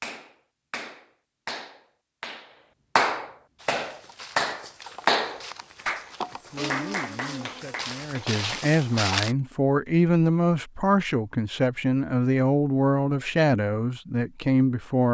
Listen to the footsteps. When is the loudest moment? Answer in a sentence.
The volume of the footsteps peaks at 9 seconds.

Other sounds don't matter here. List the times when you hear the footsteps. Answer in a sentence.
You can hear the footsteps from 3.5 to 9.3 s.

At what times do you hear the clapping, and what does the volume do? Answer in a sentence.
The clapping can be heard from 0.0 to 8.6 s, getting louder then quieter.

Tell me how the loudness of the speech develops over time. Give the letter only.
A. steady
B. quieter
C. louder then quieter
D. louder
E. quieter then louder
D.